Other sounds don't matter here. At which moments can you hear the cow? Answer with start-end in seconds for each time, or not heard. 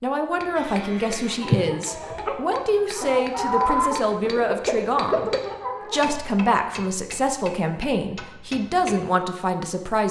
0.6-1.6.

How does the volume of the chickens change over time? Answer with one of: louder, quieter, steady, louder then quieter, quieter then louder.
louder then quieter.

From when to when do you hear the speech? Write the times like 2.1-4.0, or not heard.
0.0-5.3, 5.9-10.0.